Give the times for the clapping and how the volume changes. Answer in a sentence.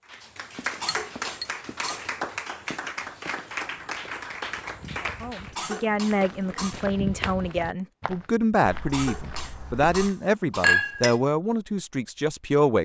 You can hear the clapping from 0.1 to 5.6 s, at a steady volume.